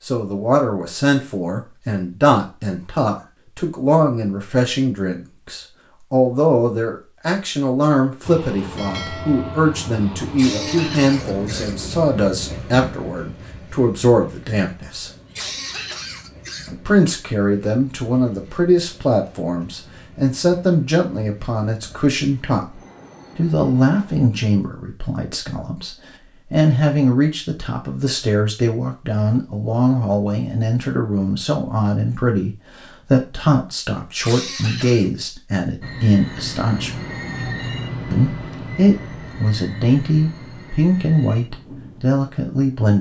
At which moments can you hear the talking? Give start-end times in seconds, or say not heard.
0.0-15.1, 16.7-37.0, 38.1-42.9.